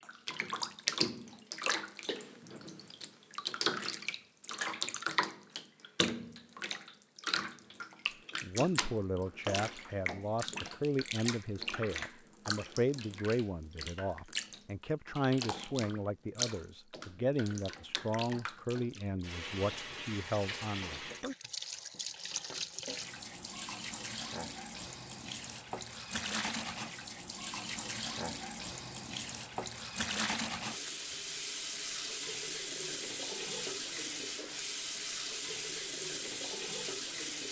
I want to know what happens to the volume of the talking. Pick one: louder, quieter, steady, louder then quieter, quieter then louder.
steady.